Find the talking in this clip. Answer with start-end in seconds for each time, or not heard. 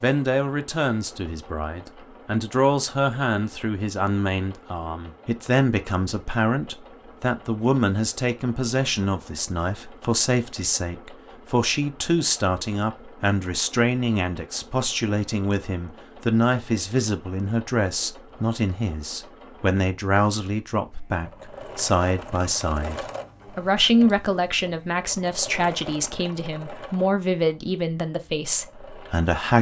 0.0-29.5.